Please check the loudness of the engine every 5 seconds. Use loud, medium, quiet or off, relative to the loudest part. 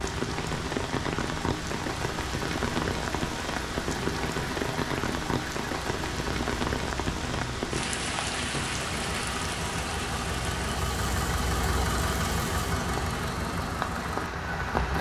medium, medium, loud.